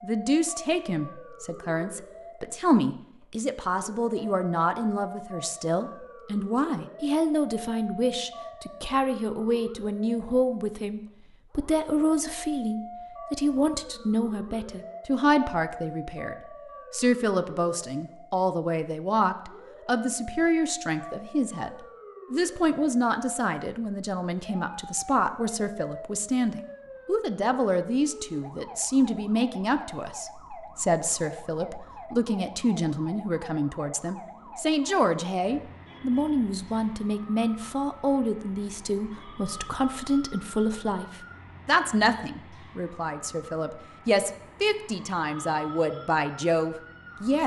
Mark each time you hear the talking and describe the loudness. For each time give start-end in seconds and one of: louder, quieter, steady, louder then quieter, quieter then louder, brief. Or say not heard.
0.0-47.4 steady.